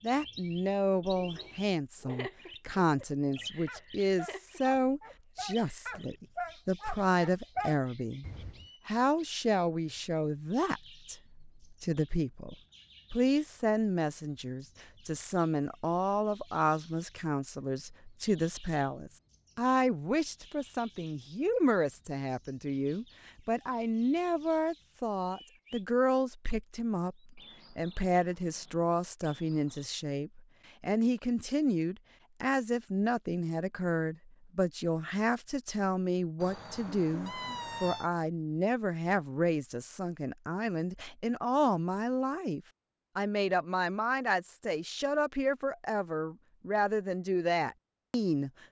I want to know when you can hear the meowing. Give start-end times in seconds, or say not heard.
36.4-38.1.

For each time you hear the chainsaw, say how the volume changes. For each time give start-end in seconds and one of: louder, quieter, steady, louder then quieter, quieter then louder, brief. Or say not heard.
not heard.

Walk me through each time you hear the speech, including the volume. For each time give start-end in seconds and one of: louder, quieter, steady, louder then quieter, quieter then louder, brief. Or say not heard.
0.0-48.5 steady.